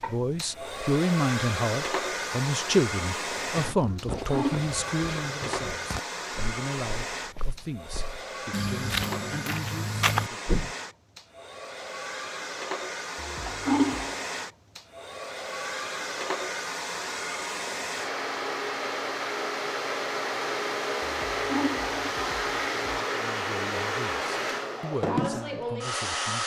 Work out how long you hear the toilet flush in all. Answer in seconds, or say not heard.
4 s.